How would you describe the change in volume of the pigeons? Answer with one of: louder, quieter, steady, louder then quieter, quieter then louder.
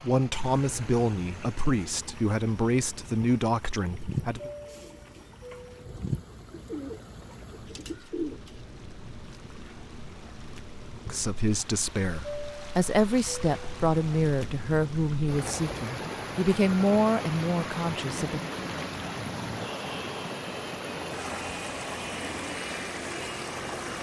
louder then quieter.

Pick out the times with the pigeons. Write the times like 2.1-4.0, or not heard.
3.9-8.5.